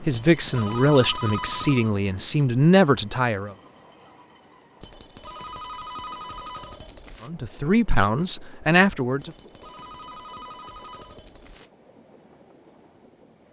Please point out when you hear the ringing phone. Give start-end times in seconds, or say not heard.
0.1-1.9, 4.8-7.3, 9.2-11.7.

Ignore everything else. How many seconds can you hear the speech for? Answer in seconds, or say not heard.
6 s.